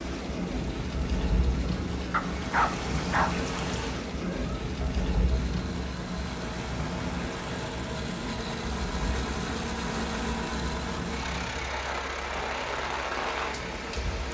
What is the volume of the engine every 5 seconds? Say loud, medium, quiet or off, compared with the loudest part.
medium, loud, loud.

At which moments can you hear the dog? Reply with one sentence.
You can hear the dog from 2.1 to 3.4 s.